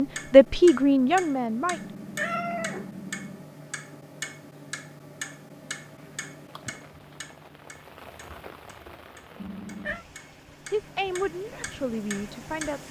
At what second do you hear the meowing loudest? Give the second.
2 s.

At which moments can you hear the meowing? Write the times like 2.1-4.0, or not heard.
1.7-3.5, 9.3-10.1.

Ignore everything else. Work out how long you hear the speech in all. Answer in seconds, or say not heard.
4 s.